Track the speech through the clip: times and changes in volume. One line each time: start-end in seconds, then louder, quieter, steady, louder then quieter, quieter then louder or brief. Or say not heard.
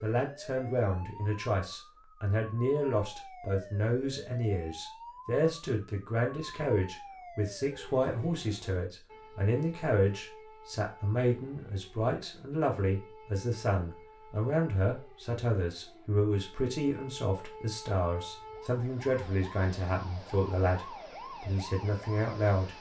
0.0-22.7 steady.